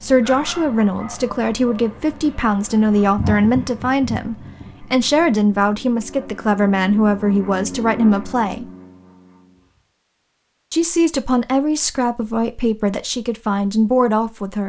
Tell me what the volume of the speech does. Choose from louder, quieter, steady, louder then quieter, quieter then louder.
steady.